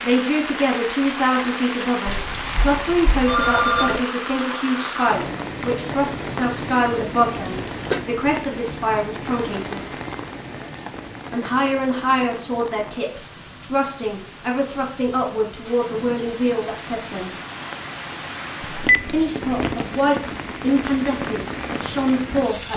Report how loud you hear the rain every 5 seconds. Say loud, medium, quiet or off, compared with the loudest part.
loud, loud, medium, loud, loud.